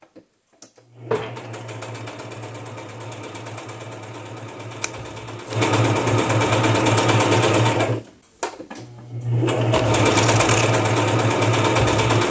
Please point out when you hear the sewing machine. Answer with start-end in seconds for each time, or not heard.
0.0-12.2.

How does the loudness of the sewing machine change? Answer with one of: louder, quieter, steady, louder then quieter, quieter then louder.
louder.